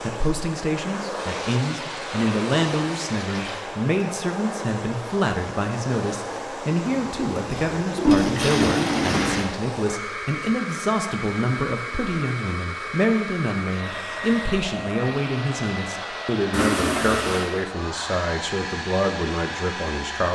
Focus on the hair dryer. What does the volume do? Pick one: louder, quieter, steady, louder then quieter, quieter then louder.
steady.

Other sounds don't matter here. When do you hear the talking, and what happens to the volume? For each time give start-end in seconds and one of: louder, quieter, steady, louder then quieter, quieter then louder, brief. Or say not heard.
0.0-20.3 steady.